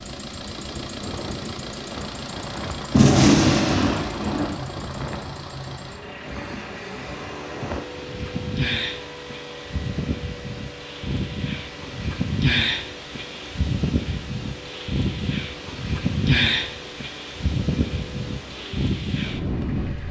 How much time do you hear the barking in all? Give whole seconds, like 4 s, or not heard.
not heard.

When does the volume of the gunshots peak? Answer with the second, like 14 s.
3 s.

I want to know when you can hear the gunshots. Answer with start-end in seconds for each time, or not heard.
2.9-4.5.